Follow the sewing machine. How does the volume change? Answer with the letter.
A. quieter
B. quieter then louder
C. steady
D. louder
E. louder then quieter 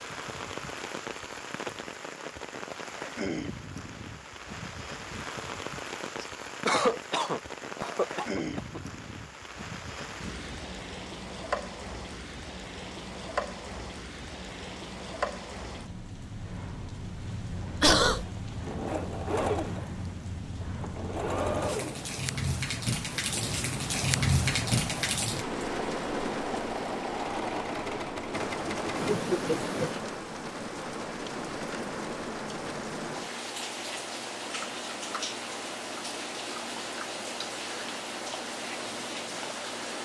B.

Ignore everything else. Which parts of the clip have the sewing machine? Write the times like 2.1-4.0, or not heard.
18.2-29.1.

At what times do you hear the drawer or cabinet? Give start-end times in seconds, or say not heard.
not heard.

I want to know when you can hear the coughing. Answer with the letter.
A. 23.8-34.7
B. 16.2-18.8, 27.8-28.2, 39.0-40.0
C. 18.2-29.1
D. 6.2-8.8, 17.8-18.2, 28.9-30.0
D.